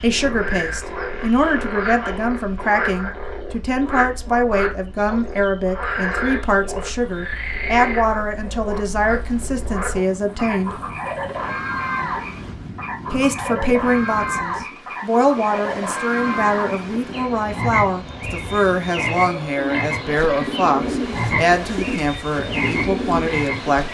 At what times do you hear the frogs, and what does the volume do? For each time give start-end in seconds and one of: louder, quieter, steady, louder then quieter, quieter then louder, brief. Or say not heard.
0.0-23.8 steady.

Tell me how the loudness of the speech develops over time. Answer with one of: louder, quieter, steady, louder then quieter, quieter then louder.
steady.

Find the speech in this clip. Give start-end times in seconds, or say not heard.
0.0-10.8, 13.1-23.8.